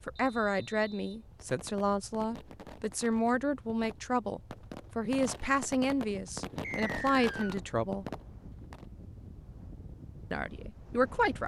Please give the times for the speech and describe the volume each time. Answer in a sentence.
The speech can be heard from 0.1 to 8.1 s, at a steady volume; and briefly from 10.3 to 11.4 s.